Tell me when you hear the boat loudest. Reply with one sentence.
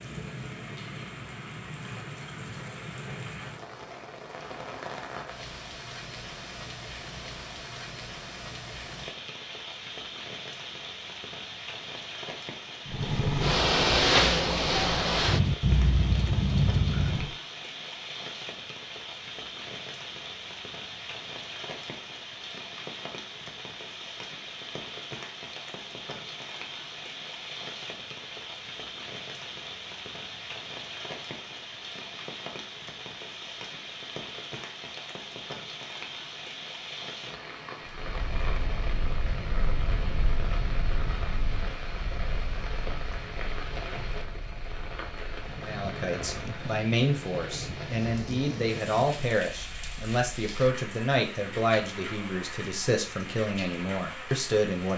The loudest moment of the boat is at 14 seconds.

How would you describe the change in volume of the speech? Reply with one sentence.
The volume of the speech stays about the same.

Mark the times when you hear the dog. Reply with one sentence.
You can't hear the dog here.